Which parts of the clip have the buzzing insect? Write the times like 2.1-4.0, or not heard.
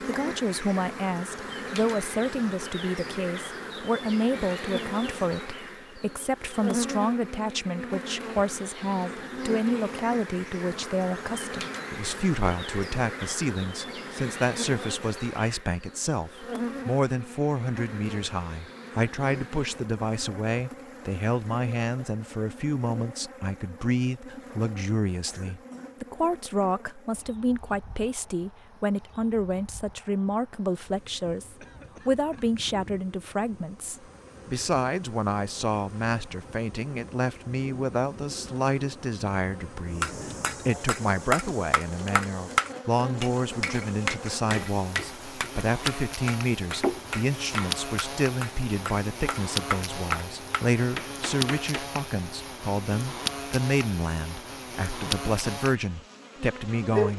0.0-57.1.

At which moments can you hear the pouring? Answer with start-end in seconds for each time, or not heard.
not heard.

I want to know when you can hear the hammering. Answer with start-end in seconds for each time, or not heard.
40.0-52.0.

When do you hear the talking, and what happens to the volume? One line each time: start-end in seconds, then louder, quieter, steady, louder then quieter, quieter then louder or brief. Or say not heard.
0.0-57.1 steady.